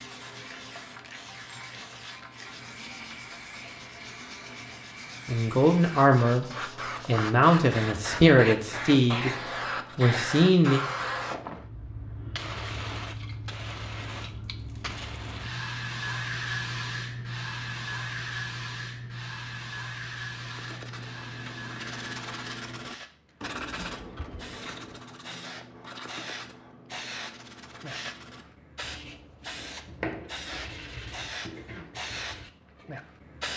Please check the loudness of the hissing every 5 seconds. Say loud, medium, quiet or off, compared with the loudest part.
medium, loud, loud, loud, medium, medium, loud.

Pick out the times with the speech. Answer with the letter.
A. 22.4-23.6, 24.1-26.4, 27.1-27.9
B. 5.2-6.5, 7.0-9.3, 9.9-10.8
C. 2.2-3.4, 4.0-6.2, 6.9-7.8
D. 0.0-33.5
B.